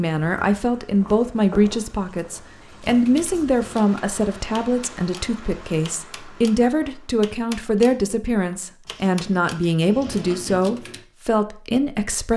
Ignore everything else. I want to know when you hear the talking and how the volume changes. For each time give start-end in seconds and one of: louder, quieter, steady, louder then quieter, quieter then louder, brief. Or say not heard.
0.0-12.3 steady.